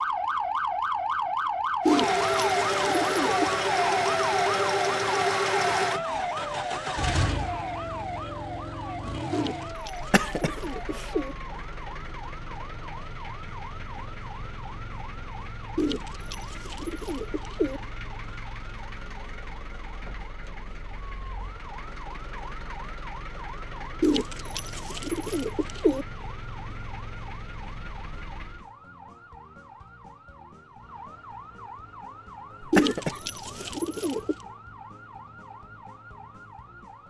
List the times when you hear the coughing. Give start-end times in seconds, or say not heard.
10.0-11.2, 32.6-33.8.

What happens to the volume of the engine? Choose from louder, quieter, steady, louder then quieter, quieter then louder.
quieter.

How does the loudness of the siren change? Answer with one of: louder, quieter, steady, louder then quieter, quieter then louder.
quieter.